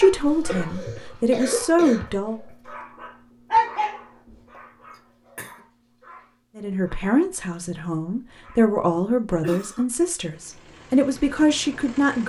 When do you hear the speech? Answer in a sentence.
You can hear the speech from 0.0 to 2.4 s and from 6.5 to 12.2 s.